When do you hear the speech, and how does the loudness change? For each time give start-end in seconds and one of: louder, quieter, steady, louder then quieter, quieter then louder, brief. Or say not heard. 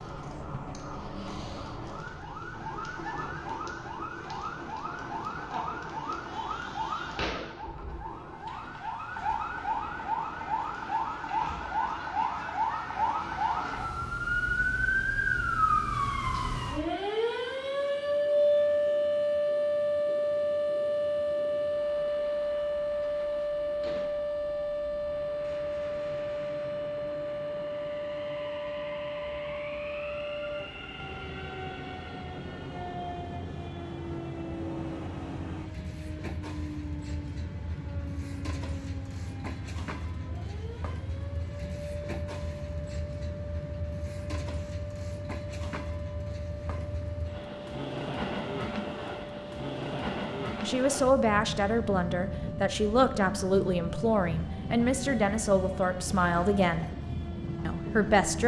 50.6-56.9 steady
57.6-58.4 brief.